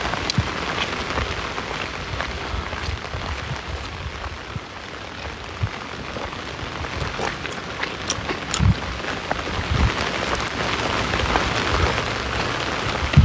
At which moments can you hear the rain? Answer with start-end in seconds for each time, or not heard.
0.0-13.2.